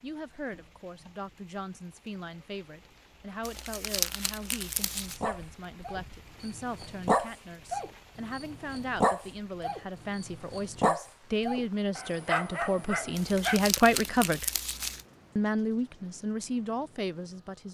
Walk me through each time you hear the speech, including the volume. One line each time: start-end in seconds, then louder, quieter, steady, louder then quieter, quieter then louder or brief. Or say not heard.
0.0-14.4 louder
15.3-17.6 brief.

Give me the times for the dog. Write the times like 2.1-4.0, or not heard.
4.7-13.6.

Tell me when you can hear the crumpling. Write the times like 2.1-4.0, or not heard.
3.4-5.2, 13.2-15.1.